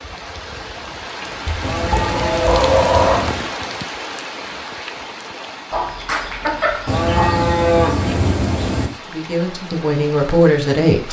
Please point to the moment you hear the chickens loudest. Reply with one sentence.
The loudest moment of the chickens is at 3 seconds.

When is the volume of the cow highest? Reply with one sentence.
The volume of the cow peaks at 8 seconds.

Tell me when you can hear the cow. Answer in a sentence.
You can hear the cow from 1.6 to 3.5 s and from 6.8 to 8.9 s.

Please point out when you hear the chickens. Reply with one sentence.
You can hear the chickens from 1.4 to 3.3 s and from 5.7 to 7.5 s.